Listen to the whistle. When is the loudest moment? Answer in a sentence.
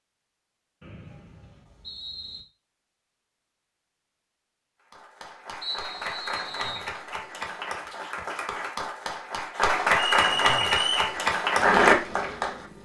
The loudest moment of the whistle is at 11 seconds.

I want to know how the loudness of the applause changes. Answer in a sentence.
The loudness of the applause goes up.